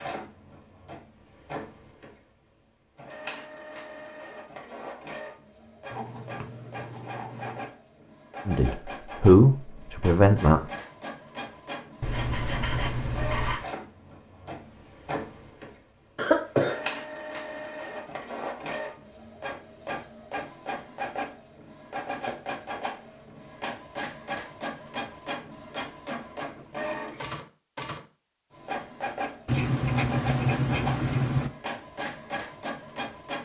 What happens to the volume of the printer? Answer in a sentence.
The loudness of the printer goes up.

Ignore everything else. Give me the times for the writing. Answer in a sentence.
The writing can be heard from 5.9 to 7.7 s, from 12.0 to 13.7 s and from 29.4 to 31.5 s.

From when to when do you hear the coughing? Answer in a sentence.
The coughing can be heard from 16.1 to 16.8 s.